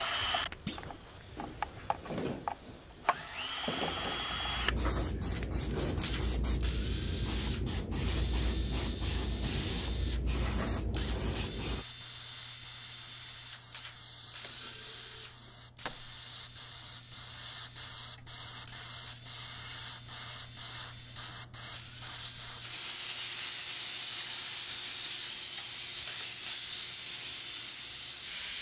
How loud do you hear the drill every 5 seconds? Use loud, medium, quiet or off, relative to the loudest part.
loud, loud, loud, medium, medium, loud.